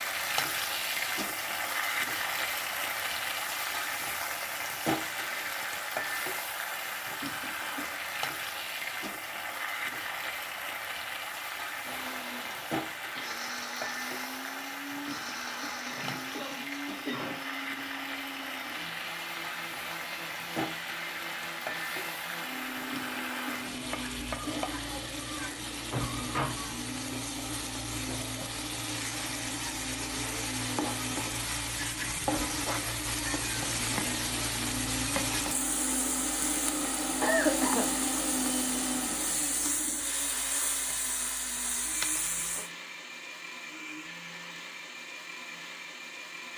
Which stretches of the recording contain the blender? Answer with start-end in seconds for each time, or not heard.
11.8-46.5.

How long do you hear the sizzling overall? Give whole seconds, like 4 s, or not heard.
43 s.